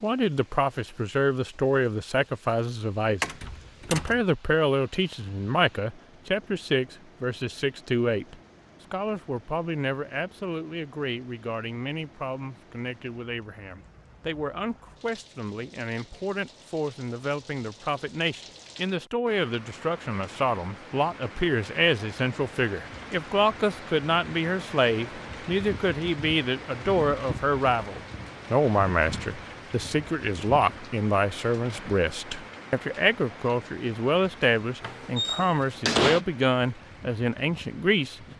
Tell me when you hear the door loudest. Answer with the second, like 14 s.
36 s.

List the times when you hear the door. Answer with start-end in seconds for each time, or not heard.
3.2-4.2, 34.8-36.2.